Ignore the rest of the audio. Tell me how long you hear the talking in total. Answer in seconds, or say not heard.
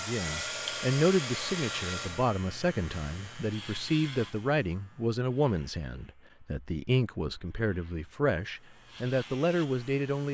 10 s.